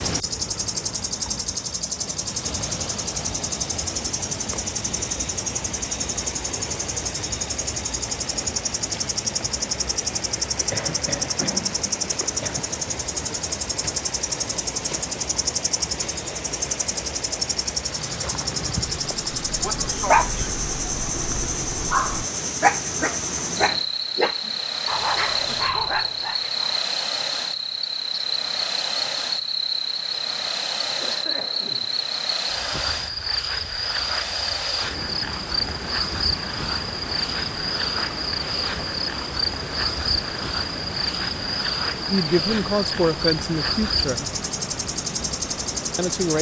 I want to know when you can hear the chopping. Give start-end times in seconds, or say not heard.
not heard.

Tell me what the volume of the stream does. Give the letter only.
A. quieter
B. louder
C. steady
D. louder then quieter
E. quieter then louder
C.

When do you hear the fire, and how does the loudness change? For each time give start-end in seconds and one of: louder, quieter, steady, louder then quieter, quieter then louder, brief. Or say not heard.
not heard.